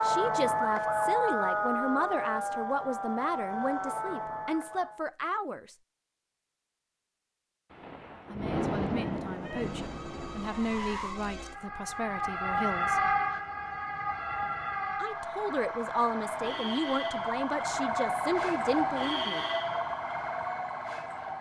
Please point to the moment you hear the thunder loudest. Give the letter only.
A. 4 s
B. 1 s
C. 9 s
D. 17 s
C.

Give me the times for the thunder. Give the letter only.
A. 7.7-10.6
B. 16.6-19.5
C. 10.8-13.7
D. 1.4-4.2
A.